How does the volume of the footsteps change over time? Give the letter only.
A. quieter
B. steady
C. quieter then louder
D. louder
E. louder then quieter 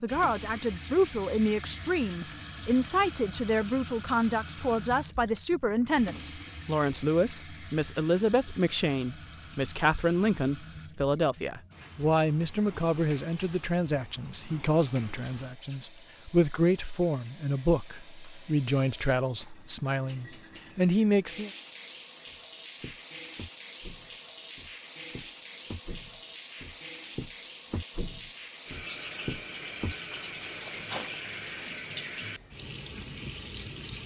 D.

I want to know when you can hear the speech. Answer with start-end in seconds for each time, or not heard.
0.0-21.5.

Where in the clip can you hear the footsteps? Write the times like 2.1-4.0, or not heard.
22.2-31.7.